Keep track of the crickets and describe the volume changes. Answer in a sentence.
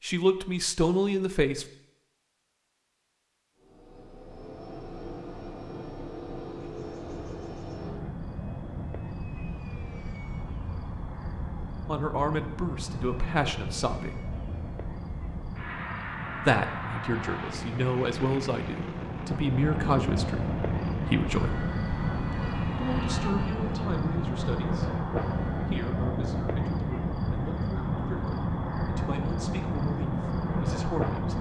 The loudness of the crickets goes up.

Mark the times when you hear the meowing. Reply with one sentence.
You can't hear the meowing here.